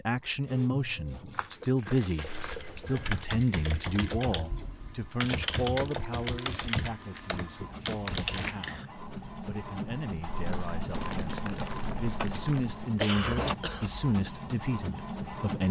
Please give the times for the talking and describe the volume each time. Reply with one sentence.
The talking can be heard from 0.0 to 15.6 s, getting quieter then louder.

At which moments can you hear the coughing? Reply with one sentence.
The coughing can be heard from 2.2 to 3.0 s and from 12.9 to 13.8 s.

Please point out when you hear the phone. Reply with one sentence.
The phone can't be heard in this clip.